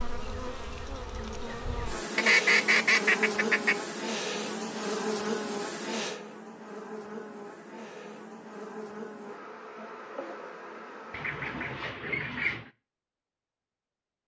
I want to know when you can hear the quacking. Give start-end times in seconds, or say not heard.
2.1-3.8, 11.1-12.7.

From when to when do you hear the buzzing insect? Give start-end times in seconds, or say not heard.
0.0-12.0.